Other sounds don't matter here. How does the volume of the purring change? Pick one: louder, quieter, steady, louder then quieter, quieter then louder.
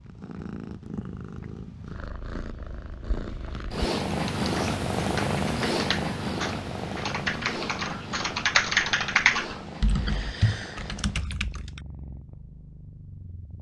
louder then quieter.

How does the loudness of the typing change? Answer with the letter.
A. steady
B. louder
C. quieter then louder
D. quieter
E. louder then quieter
E.